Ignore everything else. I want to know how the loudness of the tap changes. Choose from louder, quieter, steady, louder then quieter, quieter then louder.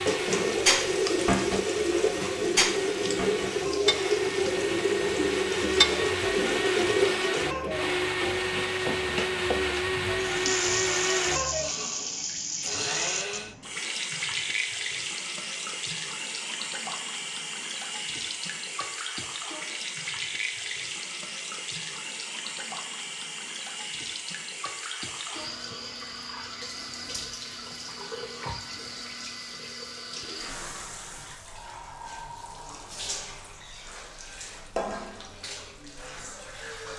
quieter.